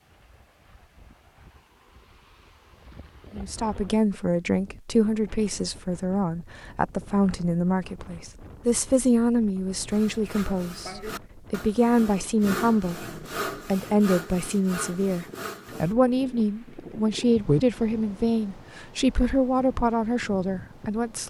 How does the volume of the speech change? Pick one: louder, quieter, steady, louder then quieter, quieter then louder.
steady.